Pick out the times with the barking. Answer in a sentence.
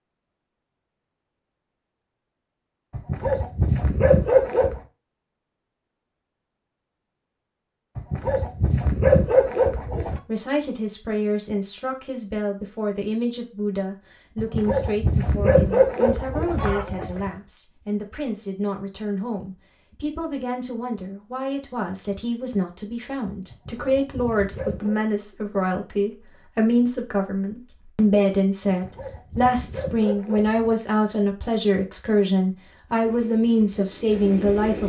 You can hear the barking from 2.9 to 4.8 s, from 8.0 to 10.2 s, from 14.3 to 17.3 s, from 23.5 to 25.0 s and from 28.6 to 30.8 s.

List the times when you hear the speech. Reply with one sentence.
The speech can be heard from 10.2 to 34.8 s.